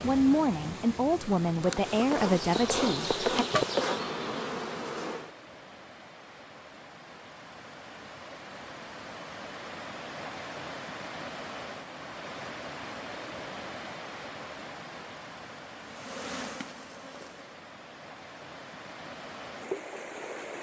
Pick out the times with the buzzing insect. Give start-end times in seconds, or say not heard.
1.6-5.3, 15.8-17.6.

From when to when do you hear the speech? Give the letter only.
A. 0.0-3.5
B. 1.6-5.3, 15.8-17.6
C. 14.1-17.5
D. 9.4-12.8
A.